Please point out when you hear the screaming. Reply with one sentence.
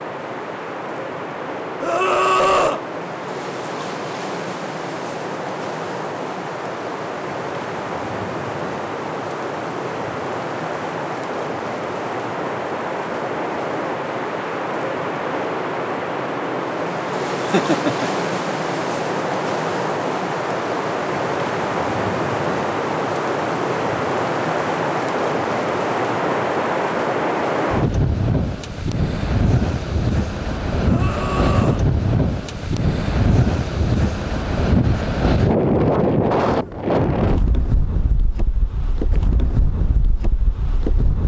The screaming can be heard from 1.8 to 2.8 s and from 30.8 to 31.9 s.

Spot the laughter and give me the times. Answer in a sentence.
You can hear the laughter from 17.4 to 18.1 s.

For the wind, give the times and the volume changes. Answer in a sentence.
You can hear the wind from 0.0 to 41.2 s, getting louder.